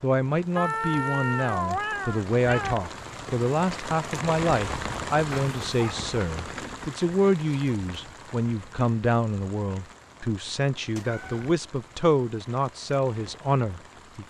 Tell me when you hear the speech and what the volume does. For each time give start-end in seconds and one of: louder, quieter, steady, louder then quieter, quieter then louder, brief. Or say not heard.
0.0-14.2 steady.